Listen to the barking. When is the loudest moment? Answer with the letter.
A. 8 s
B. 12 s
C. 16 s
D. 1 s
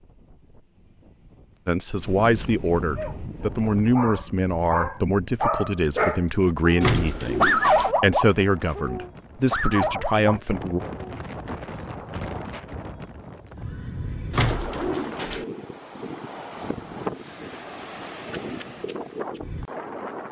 A.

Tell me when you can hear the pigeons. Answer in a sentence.
The pigeons can be heard from 6.8 to 8.0 s and from 14.3 to 15.4 s.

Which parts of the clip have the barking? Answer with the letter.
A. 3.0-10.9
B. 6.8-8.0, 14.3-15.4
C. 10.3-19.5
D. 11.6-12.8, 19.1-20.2
A.